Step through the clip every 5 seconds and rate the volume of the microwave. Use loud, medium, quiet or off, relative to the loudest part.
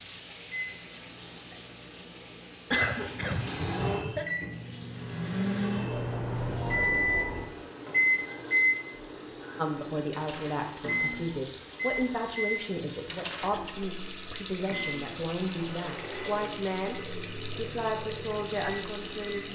medium, loud, medium, quiet.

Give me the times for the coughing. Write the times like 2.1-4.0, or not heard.
2.7-4.2.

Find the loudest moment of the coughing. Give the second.
3 s.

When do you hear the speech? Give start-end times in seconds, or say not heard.
9.6-19.5.